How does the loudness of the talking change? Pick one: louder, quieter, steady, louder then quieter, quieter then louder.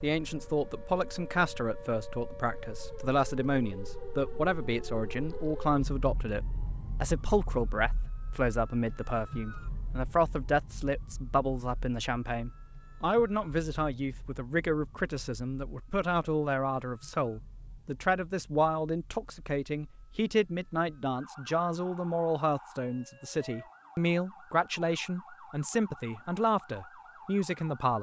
steady.